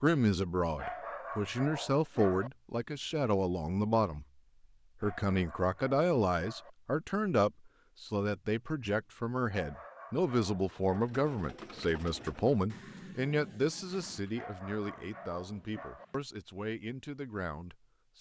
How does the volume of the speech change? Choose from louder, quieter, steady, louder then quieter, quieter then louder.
quieter.